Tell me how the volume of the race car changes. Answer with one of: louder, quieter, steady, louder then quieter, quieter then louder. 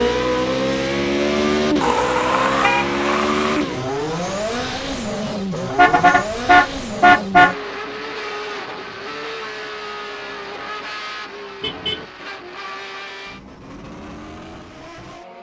quieter.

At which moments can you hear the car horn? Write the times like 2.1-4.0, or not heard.
1.8-3.6, 5.7-7.5, 11.6-12.1.